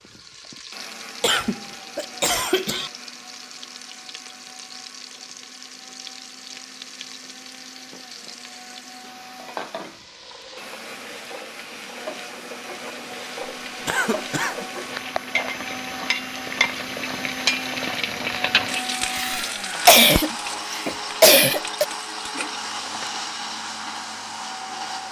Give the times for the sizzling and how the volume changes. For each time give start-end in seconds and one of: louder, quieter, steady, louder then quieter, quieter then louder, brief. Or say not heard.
0.0-25.0 louder then quieter.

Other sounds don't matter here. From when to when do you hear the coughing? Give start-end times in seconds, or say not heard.
1.2-2.9, 13.8-14.7, 19.1-21.9.